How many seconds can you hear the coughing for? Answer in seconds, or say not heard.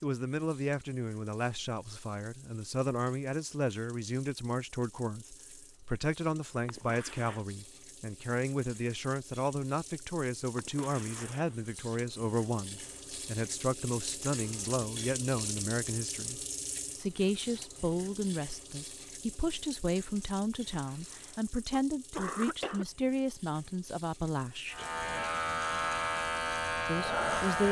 4 s.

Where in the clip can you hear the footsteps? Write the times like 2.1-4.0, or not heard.
not heard.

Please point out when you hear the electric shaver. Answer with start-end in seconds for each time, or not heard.
24.7-27.6.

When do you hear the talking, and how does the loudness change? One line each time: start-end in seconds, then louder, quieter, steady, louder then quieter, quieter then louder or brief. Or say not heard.
0.0-24.8 steady
26.9-27.6 brief.